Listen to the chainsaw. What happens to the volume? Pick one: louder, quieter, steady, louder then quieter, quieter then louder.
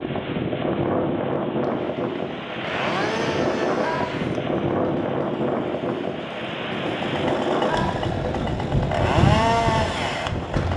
quieter then louder.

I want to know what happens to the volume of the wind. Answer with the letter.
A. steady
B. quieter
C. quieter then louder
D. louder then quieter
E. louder
A.